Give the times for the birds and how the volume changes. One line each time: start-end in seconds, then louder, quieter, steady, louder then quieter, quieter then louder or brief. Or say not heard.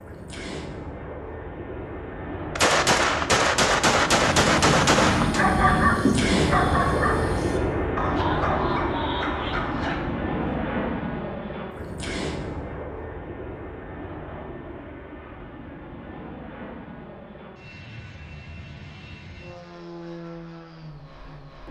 not heard.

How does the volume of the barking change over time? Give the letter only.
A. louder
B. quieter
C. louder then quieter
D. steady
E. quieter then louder
B.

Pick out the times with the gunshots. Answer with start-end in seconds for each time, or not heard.
2.5-5.5.